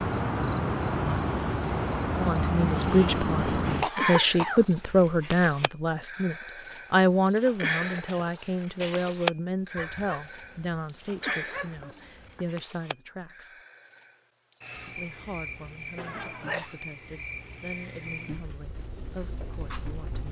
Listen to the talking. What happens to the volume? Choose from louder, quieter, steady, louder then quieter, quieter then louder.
quieter.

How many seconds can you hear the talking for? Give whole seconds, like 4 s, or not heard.
17 s.